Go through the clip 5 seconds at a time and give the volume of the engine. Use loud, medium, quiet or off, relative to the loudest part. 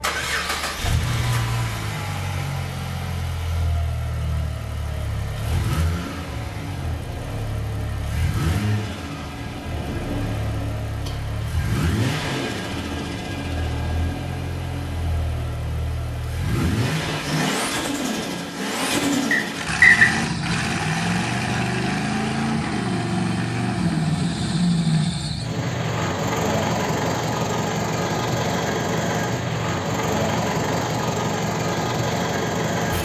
medium, medium, medium, loud, loud, loud, loud.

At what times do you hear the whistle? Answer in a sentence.
You can hear the whistle from 19.3 to 20.1 s.